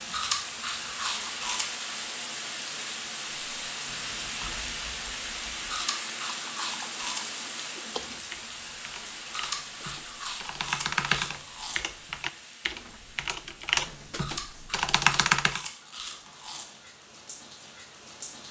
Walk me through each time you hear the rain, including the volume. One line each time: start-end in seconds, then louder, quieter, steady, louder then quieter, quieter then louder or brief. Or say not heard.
0.0-18.4 quieter.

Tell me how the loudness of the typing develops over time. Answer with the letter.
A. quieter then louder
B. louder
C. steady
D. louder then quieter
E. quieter
B.